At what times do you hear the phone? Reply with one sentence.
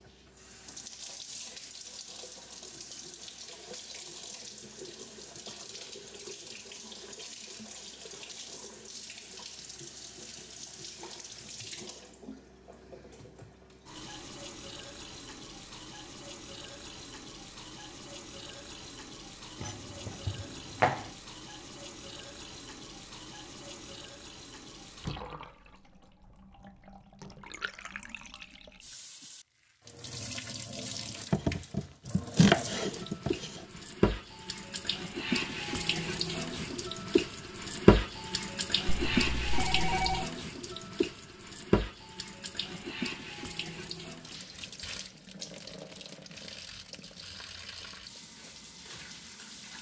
The phone can be heard from 39.0 to 40.2 s.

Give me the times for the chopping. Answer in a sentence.
The chopping can be heard from 19.6 to 21.1 s and from 31.3 to 33.8 s.